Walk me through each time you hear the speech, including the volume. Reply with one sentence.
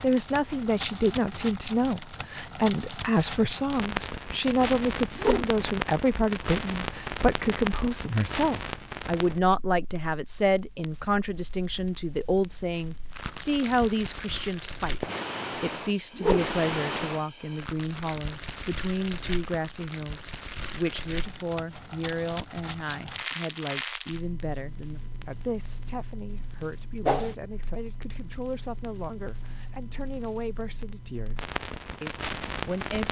The speech can be heard from 0.0 to 33.0 s, getting quieter.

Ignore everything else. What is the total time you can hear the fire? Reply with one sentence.
The fire can be heard for 33 seconds in total.